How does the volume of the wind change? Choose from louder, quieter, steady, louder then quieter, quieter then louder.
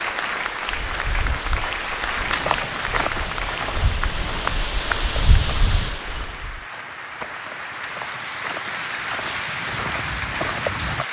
louder.